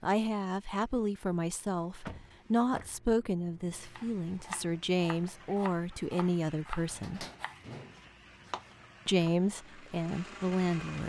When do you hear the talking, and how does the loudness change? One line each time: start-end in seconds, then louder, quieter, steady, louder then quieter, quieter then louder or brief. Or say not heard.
0.0-7.2 steady
9.1-11.0 brief.